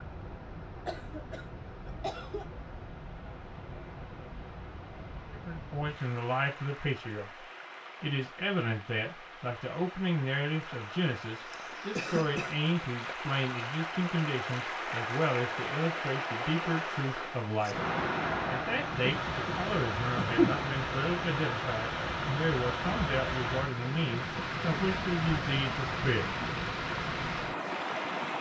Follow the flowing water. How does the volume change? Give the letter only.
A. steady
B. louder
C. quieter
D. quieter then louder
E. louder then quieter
B.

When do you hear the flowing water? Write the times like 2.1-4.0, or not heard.
0.0-28.3.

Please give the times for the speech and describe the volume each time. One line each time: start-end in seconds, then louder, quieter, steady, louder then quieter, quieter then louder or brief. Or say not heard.
5.3-17.8 steady
18.5-26.3 steady.